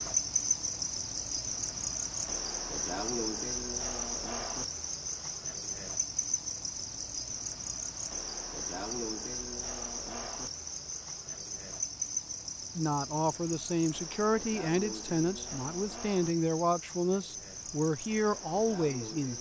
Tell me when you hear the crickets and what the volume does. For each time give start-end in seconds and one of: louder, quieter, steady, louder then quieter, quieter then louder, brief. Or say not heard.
0.0-19.3 quieter.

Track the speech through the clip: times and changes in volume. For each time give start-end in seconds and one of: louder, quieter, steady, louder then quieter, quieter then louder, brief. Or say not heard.
12.8-19.3 steady.